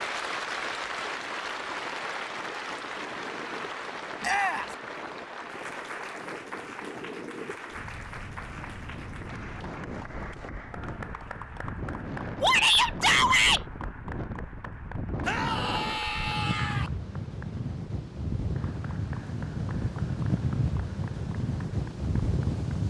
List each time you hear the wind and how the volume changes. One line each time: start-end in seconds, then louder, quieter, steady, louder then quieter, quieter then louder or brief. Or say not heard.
0.0-22.8 louder.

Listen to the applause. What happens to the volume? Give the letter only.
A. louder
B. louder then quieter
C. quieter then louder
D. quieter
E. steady
D.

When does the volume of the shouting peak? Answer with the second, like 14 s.
13 s.